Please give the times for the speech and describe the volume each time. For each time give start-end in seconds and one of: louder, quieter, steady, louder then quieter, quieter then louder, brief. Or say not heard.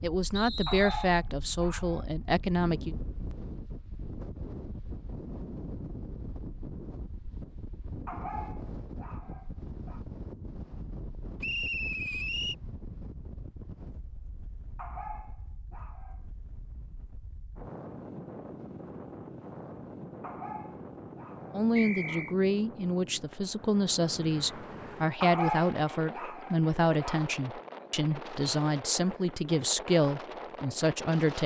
0.0-3.0 brief
21.5-31.4 steady.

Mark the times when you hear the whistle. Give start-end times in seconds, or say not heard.
0.3-1.1, 11.4-12.6, 21.8-22.4.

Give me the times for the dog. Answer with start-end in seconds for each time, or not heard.
0.7-2.0, 8.1-10.0, 14.8-16.2, 20.2-22.2, 25.2-27.2.